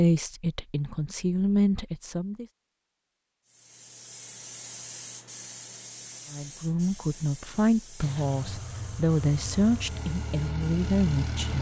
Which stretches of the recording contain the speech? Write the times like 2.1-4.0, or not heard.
0.0-2.5, 6.3-11.5.